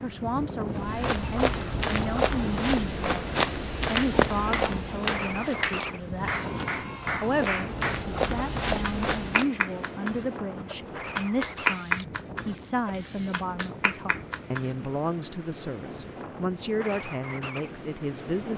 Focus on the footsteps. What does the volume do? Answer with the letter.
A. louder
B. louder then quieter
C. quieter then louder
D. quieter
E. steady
C.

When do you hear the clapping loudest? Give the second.
12 s.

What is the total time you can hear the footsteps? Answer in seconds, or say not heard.
9 s.